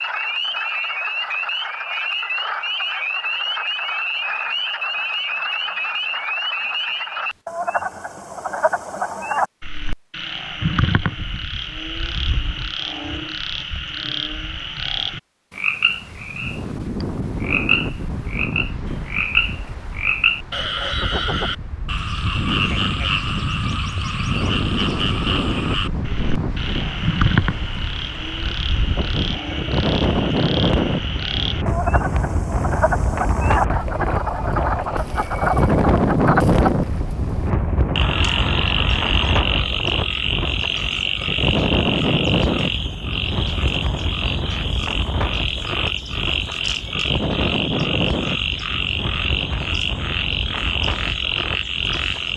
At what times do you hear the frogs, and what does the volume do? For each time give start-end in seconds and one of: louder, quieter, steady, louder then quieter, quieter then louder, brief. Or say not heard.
0.0-52.3 steady.